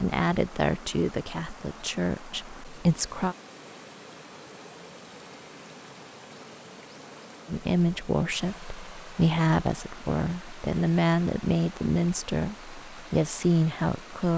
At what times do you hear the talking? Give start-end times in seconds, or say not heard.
0.0-3.4, 7.5-14.3.